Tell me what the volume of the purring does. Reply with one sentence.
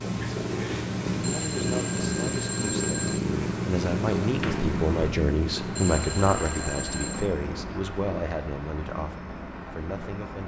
The loudness of the purring goes down.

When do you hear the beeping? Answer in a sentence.
You can hear the beeping from 1.2 to 3.2 s and from 5.8 to 7.3 s.